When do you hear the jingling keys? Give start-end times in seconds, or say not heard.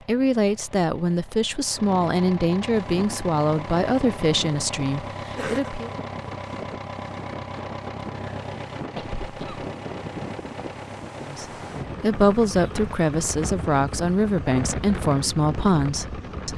not heard.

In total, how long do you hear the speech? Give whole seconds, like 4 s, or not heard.
11 s.